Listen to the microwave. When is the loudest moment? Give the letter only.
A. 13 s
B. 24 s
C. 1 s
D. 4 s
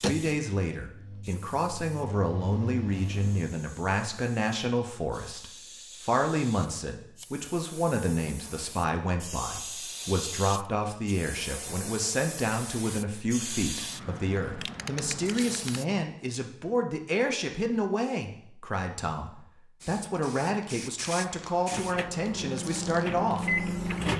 B.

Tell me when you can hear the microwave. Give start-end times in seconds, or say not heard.
0.0-3.5, 21.6-24.1.